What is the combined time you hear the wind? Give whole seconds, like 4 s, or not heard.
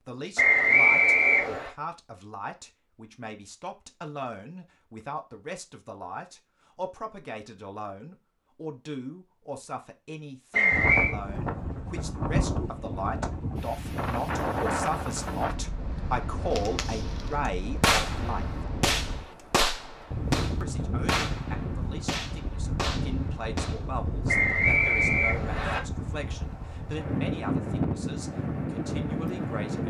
19 s.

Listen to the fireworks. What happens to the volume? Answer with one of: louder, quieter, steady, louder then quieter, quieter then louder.
quieter.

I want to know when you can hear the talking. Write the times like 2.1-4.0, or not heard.
0.1-18.6, 20.6-29.8.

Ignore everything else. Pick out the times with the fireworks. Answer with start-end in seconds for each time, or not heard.
16.6-23.8.